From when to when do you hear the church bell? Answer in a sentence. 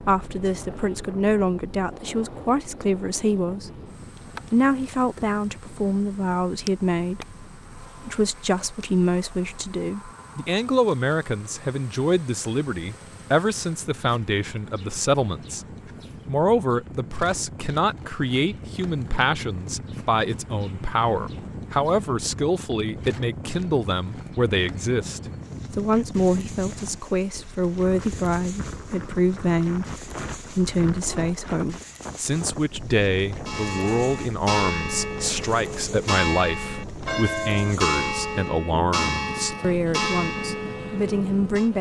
You can hear the church bell from 33.5 to 41.7 s.